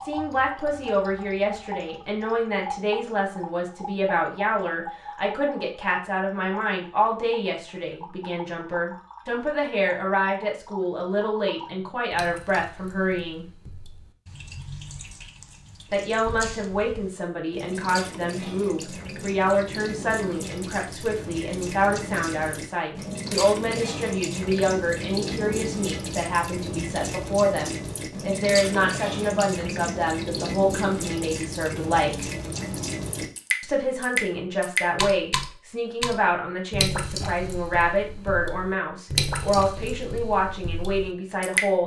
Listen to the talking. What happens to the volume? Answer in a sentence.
The loudness of the talking stays about the same.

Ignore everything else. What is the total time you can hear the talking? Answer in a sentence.
The talking can be heard for 38 seconds in total.